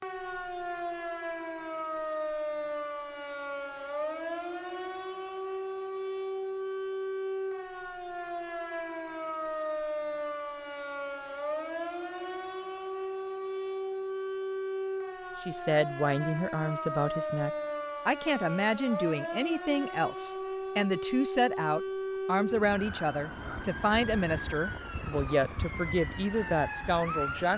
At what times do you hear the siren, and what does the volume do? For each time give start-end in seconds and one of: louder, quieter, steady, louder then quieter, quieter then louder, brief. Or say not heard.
0.0-27.5 steady.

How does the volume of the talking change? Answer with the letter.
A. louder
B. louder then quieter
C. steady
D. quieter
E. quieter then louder
C.